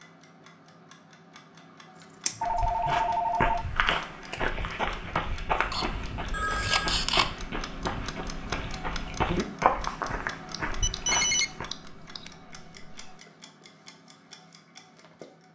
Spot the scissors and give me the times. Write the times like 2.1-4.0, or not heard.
2.2-3.0, 5.7-7.3, 10.5-12.2.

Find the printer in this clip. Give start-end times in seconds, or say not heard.
not heard.